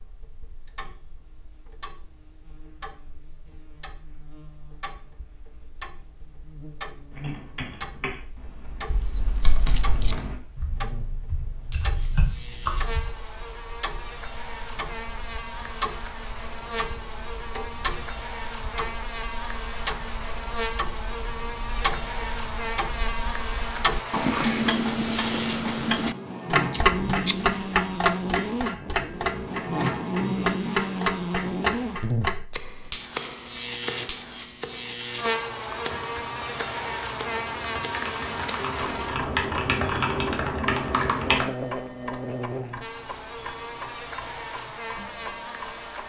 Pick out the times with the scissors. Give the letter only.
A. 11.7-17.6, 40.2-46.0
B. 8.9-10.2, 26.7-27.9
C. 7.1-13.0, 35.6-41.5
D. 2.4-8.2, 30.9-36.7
B.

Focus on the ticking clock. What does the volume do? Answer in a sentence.
The volume of the ticking clock goes up, then down.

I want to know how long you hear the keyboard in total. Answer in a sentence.
You can hear the keyboard for 12 seconds altogether.